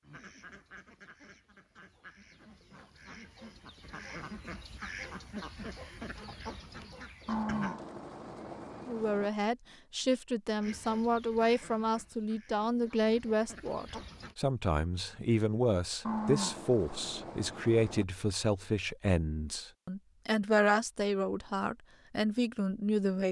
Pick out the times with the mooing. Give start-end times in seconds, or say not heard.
7.2-9.3, 16.1-18.1.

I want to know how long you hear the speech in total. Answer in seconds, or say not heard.
14 s.